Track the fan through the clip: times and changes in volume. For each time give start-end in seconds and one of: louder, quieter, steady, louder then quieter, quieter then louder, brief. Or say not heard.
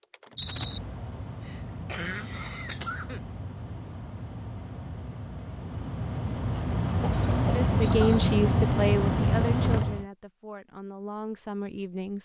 0.0-10.1 louder.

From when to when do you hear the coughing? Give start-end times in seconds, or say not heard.
1.4-3.2, 6.5-8.2.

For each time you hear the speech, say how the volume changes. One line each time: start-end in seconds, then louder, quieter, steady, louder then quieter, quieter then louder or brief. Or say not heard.
7.4-12.2 quieter then louder.